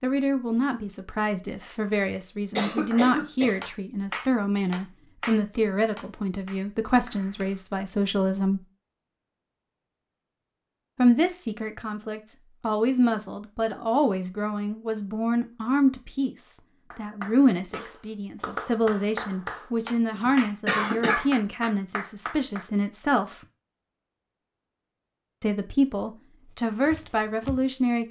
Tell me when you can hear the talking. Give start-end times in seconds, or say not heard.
0.0-8.6, 10.9-23.4, 25.4-28.0.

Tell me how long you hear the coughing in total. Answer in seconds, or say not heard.
2 s.